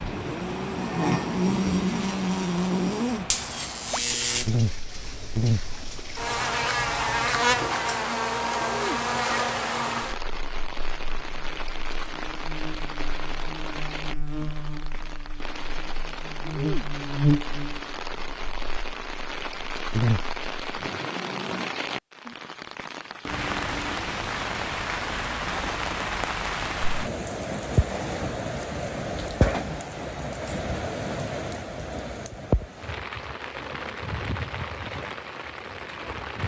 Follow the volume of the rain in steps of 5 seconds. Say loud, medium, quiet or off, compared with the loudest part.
medium, medium, medium, medium, loud, loud, loud, medium.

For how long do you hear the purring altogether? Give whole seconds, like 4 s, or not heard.
not heard.